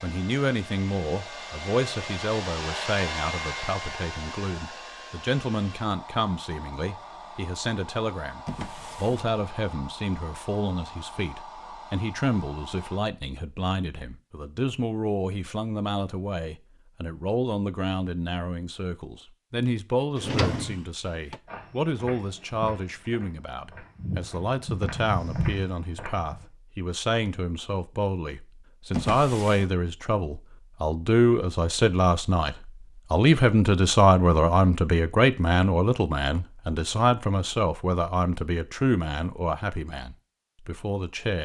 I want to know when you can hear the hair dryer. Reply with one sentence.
You can hear the hair dryer from 0.0 to 13.0 s.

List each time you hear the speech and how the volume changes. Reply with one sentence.
You can hear the speech from 0.0 to 41.3 s, getting louder.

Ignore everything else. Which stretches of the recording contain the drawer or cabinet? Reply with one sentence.
The drawer or cabinet can be heard from 8.4 to 9.3 s, from 20.1 to 21.4 s and from 28.9 to 29.7 s.